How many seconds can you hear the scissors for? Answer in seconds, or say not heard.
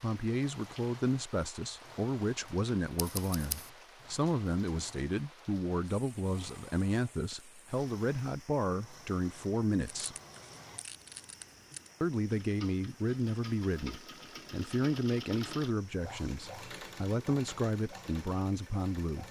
3 s.